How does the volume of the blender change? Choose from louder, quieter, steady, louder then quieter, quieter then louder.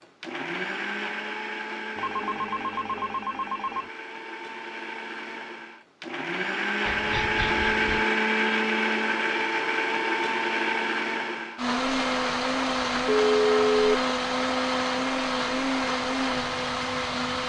louder.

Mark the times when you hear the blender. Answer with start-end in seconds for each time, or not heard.
0.0-17.4.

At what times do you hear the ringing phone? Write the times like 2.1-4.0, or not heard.
1.9-3.9, 6.8-8.1, 12.9-13.9.